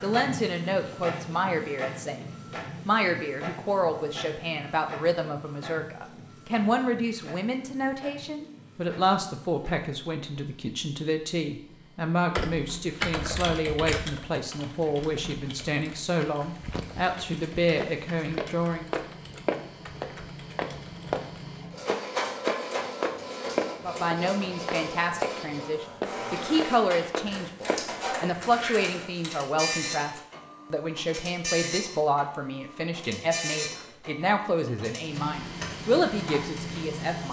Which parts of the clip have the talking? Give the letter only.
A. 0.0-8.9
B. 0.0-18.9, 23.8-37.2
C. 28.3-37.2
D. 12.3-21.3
B.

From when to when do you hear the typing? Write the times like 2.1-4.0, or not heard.
12.3-21.3.